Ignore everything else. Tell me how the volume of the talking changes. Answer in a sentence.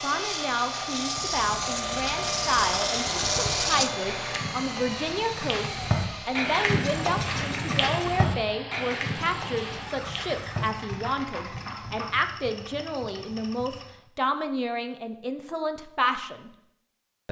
The loudness of the talking stays about the same.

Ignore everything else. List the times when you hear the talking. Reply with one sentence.
The talking can be heard from 0.0 to 16.5 s.